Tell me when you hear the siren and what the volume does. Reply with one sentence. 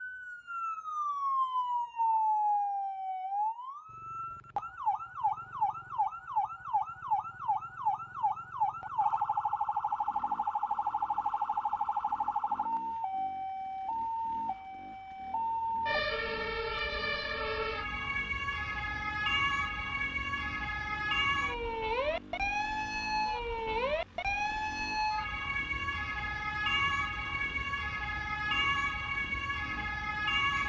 You can hear the siren from 0.0 to 30.6 s, at a steady volume.